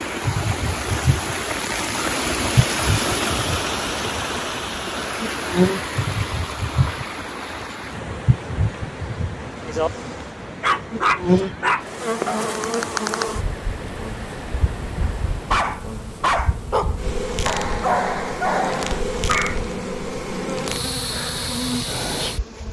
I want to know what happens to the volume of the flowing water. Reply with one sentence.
The loudness of the flowing water goes down.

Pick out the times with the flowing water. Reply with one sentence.
You can hear the flowing water from 0.0 to 15.7 s.